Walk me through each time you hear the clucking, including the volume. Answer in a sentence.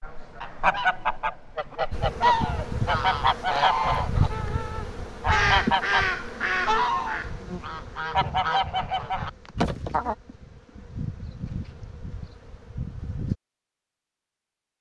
You can hear the clucking from 0.0 to 10.2 s, at a steady volume.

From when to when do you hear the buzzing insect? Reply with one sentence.
You can hear the buzzing insect from 1.9 to 13.3 s.